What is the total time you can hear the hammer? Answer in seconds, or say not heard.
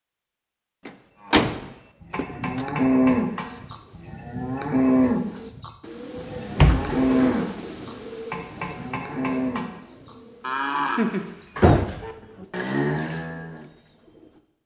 3 s.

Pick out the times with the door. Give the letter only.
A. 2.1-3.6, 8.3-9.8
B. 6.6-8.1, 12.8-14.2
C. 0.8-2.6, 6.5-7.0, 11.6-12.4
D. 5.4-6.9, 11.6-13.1
C.